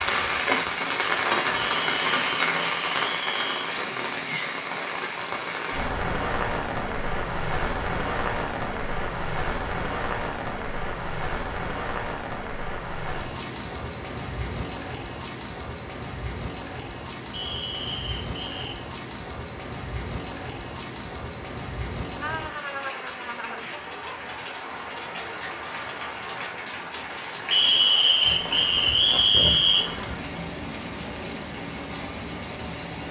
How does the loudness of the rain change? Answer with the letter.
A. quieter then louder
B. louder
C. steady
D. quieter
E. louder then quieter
D.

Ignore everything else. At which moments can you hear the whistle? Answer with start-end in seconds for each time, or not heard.
1.5-3.8, 17.3-18.8, 27.5-29.9.